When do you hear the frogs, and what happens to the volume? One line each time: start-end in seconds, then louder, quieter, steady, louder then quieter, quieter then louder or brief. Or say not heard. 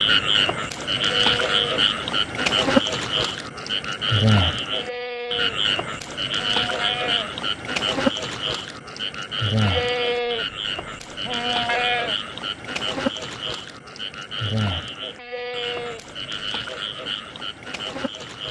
0.0-18.4 quieter.